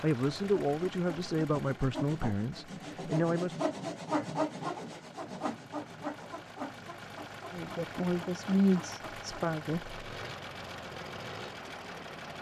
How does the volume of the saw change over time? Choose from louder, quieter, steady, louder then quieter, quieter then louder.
louder then quieter.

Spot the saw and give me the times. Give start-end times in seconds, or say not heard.
0.2-11.6.